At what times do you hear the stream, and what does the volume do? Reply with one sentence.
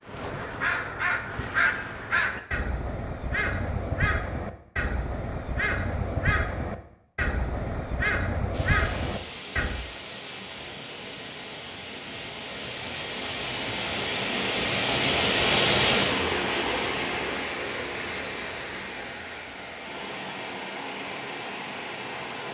The stream can be heard from 8.5 to 22.4 s, getting louder then quieter.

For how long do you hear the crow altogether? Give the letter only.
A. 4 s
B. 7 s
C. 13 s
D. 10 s
D.